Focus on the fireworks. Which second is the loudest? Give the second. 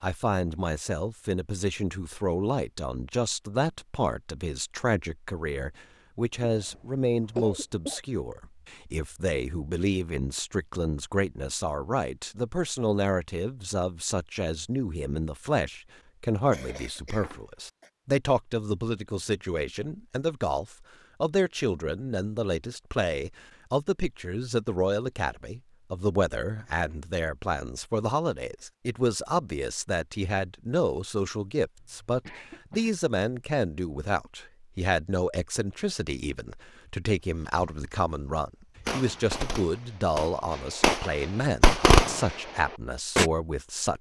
42 s.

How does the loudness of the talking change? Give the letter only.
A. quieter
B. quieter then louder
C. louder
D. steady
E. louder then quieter
D.